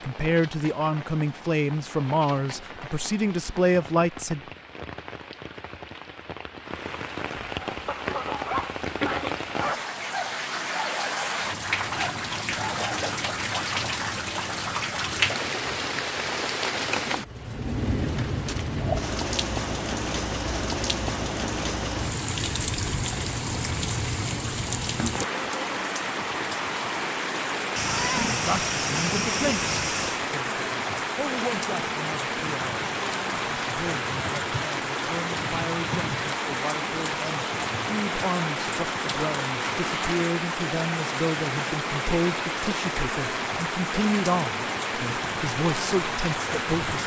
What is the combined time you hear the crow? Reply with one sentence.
You can't hear the crow here.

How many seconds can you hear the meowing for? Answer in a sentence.
The meowing can be heard for 3 seconds in total.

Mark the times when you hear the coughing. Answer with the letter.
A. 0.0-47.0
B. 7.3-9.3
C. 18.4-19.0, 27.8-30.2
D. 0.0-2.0
B.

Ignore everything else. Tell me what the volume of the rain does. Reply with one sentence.
The volume of the rain goes up.